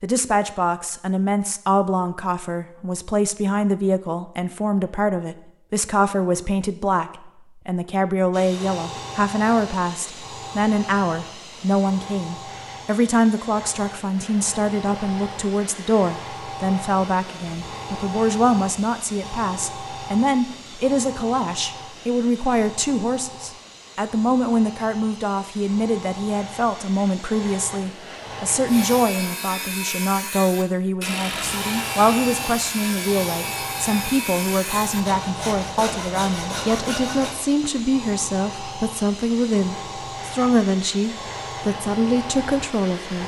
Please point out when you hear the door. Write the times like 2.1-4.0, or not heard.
not heard.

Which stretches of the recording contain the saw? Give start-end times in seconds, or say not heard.
28.6-37.4.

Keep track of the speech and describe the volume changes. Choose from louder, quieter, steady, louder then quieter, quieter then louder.
steady.